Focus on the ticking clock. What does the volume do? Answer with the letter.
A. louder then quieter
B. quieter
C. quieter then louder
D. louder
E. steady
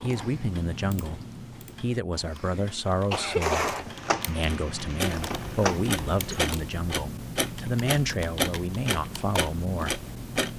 D.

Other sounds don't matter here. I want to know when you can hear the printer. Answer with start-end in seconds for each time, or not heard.
3.1-6.3.